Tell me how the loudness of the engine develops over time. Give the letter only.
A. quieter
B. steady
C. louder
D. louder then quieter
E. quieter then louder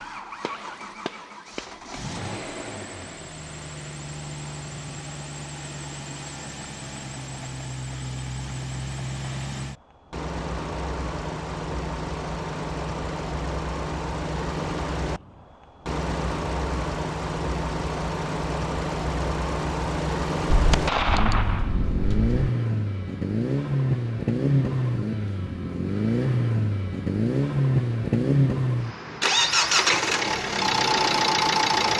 C.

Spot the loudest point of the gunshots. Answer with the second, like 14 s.
21 s.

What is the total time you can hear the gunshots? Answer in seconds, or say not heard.
3 s.